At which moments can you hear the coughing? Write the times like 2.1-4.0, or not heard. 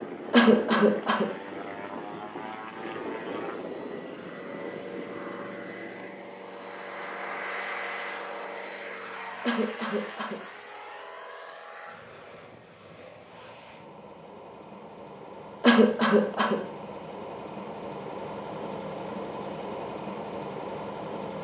0.3-1.3, 9.4-10.4, 15.6-16.6.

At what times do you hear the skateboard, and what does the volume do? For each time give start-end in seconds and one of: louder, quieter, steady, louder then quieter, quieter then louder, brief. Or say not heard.
not heard.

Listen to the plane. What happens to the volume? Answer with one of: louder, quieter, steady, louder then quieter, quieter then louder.
quieter then louder.